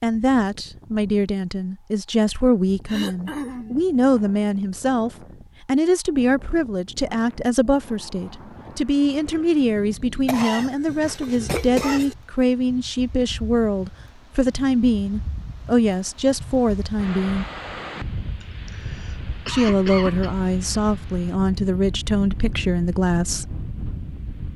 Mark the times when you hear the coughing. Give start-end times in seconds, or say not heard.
2.9-3.8, 10.2-12.2, 18.4-20.4.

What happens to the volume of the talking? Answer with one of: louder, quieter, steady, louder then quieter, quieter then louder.
steady.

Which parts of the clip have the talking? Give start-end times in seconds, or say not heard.
0.0-17.4, 19.4-23.5.